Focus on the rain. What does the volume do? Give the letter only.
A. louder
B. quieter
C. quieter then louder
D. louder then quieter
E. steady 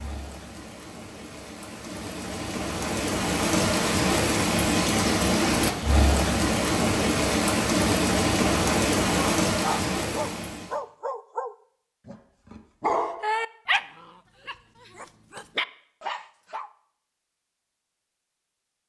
A.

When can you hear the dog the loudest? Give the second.
13 s.